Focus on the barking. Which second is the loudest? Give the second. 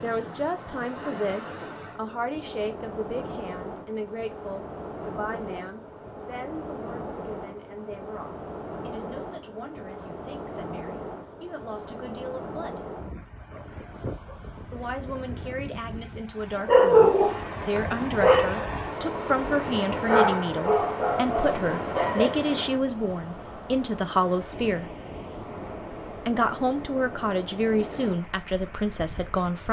17 s.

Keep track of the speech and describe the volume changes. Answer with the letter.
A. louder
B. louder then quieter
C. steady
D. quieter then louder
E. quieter
D.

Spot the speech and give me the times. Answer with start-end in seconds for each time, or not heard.
0.0-12.9, 14.7-24.9, 26.2-29.6.